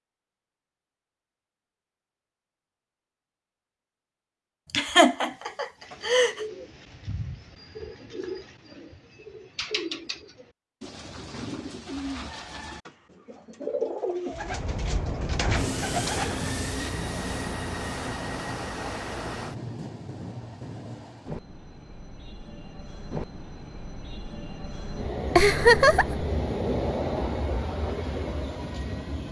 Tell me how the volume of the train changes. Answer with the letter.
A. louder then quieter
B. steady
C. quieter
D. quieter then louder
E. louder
D.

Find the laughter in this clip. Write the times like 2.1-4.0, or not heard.
4.7-6.4, 25.4-26.2.